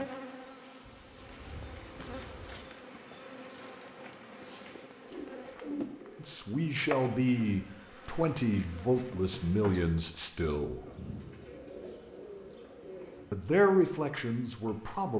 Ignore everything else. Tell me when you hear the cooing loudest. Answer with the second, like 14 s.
6 s.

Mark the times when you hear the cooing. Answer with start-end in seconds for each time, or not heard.
0.8-2.5, 5.0-6.3, 10.8-13.2.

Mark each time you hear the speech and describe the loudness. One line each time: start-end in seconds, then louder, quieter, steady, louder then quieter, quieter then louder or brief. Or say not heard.
6.2-10.8 steady
13.3-15.1 brief.